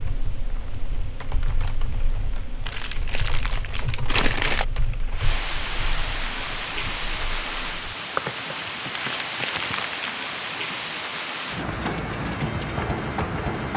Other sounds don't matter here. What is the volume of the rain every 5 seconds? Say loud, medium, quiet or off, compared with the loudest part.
quiet, loud, loud.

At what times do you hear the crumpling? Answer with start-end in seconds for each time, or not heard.
2.6-4.7, 8.9-10.2.